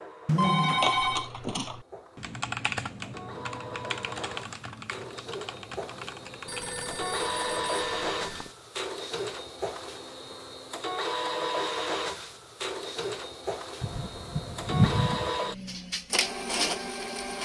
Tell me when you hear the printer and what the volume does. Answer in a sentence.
The printer can be heard from 0.0 to 17.4 s, getting louder.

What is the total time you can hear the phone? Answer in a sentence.
The phone can be heard for 5 seconds in total.